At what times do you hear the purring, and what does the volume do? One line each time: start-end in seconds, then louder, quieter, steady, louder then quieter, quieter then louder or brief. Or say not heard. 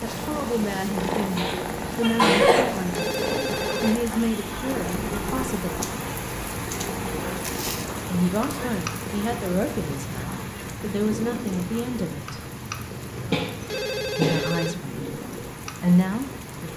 0.0-16.7 quieter.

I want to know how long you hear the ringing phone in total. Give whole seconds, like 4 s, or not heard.
2 s.